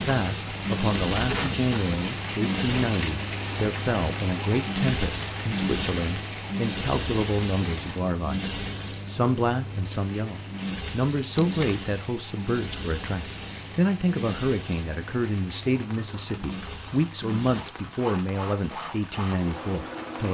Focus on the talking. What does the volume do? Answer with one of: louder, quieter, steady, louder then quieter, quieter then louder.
steady.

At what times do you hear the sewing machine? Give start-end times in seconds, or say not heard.
0.0-20.2.